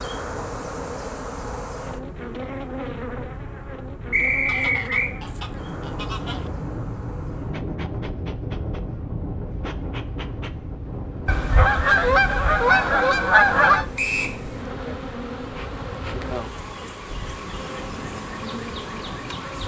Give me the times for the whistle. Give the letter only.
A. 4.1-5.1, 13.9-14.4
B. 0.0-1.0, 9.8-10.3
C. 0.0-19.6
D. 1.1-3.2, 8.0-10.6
A.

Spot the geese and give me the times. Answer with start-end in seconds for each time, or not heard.
4.5-6.5, 11.2-13.8.